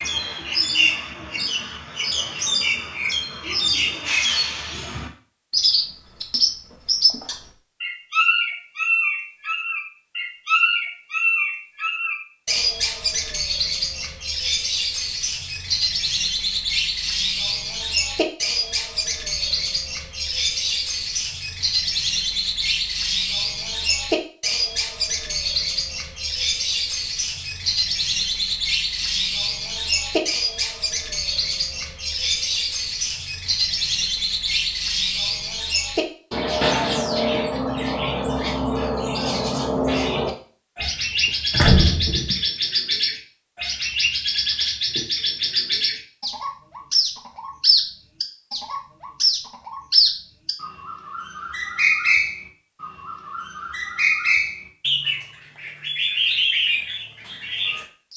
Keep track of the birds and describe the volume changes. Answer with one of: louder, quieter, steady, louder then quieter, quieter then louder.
steady.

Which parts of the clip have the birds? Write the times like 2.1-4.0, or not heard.
0.0-58.1.